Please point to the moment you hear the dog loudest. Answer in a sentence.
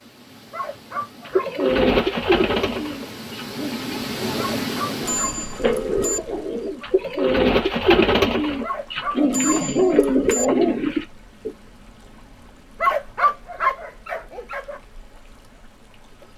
The loudest moment of the dog is at 13 seconds.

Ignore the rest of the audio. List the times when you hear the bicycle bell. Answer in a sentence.
You can hear the bicycle bell from 5.0 to 6.2 s and from 9.3 to 10.4 s.